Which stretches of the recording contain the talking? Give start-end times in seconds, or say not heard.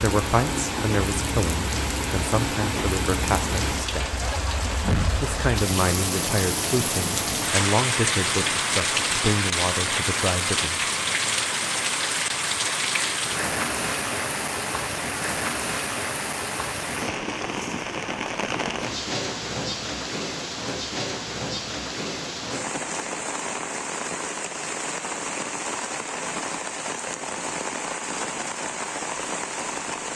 0.0-4.2, 5.2-10.8.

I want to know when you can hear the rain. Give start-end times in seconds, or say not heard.
0.0-30.1.